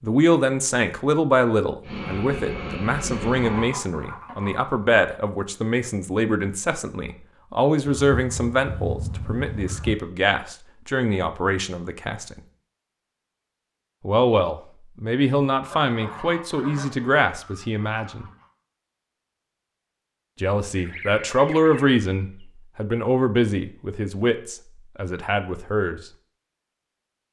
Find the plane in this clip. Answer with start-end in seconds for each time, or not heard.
1.8-3.7.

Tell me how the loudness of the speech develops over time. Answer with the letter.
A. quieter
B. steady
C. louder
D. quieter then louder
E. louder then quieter
B.